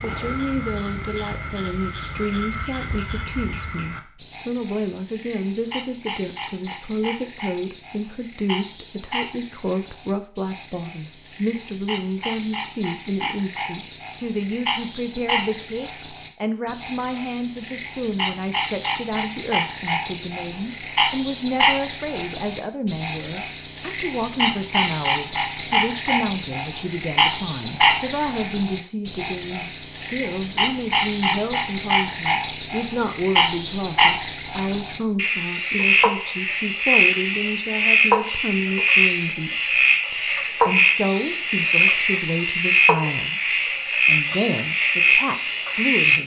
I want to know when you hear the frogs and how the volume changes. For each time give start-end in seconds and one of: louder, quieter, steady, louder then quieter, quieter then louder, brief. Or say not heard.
0.0-46.2 louder.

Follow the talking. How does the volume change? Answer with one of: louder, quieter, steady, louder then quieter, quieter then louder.
steady.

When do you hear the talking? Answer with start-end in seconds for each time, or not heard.
0.0-46.2.